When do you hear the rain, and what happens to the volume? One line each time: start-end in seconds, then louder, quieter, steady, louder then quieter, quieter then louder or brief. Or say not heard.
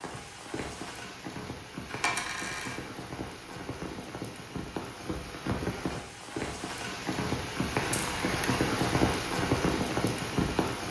0.0-10.8 louder.